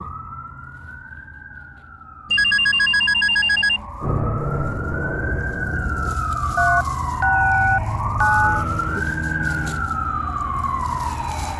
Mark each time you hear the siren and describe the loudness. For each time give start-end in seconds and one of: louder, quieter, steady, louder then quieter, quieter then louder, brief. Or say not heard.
0.0-11.5 louder.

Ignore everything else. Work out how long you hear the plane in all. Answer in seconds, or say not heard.
5 s.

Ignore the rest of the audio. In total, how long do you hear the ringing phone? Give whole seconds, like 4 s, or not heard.
4 s.